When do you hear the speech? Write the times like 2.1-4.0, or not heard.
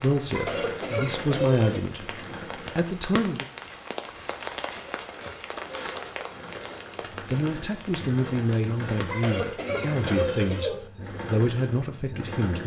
0.0-2.1, 2.8-3.5, 7.2-12.6.